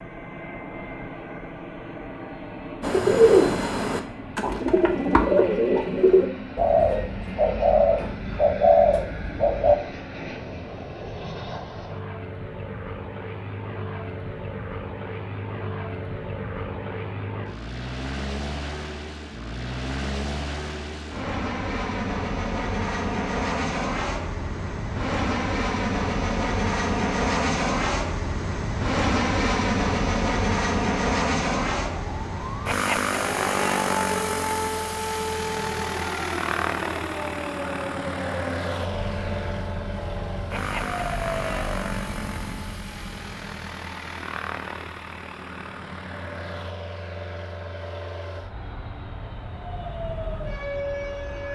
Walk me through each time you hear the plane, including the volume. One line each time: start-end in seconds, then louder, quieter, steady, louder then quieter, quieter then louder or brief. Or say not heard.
0.0-51.5 louder then quieter.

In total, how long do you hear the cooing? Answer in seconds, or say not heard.
7 s.